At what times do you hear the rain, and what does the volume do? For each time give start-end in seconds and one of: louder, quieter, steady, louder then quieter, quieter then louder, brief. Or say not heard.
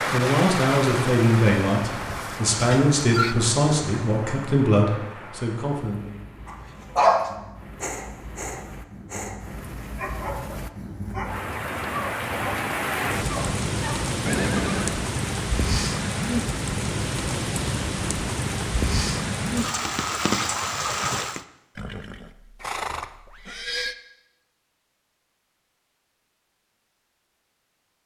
0.0-21.4 quieter then louder.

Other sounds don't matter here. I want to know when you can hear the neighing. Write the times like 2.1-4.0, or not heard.
2.0-3.4, 14.2-15.1, 21.8-23.9.